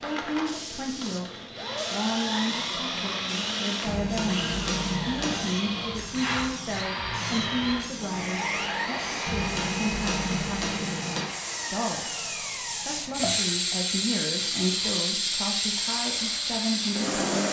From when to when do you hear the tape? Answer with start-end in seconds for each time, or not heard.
not heard.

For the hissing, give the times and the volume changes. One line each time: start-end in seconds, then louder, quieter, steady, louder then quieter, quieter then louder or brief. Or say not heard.
0.0-17.4 louder.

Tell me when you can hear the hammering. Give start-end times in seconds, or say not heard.
3.9-5.6, 9.2-11.2.